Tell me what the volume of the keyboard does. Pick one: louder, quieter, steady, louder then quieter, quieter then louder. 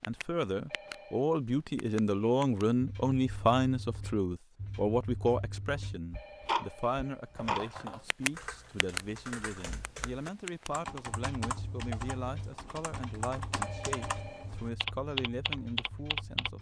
louder.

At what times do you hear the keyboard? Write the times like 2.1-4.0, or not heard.
7.3-16.5.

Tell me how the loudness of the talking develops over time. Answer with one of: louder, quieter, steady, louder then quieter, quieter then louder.
quieter.